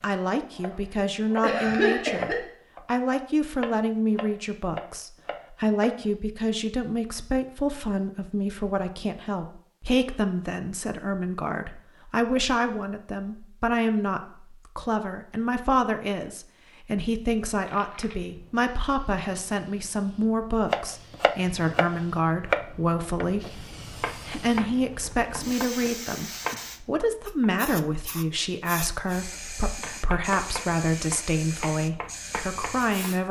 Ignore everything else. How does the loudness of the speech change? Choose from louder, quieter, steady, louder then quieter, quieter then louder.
steady.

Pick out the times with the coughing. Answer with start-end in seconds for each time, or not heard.
1.4-2.4.